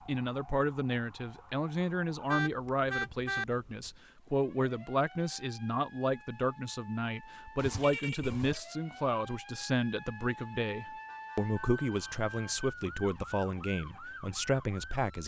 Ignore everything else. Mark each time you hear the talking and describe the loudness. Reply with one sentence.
You can hear the talking from 0.1 to 15.2 s, at a steady volume.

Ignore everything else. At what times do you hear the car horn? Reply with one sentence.
The car horn can be heard from 2.2 to 3.5 s, from 7.5 to 8.6 s and from 11.1 to 12.2 s.